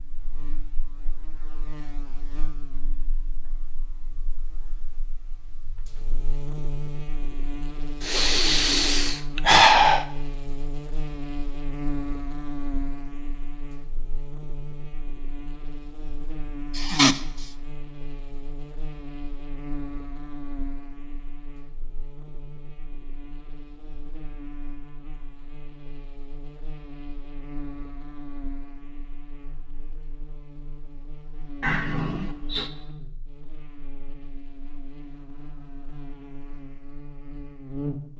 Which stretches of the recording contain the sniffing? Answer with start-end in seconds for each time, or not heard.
8.0-10.1, 16.8-17.2, 31.6-32.7.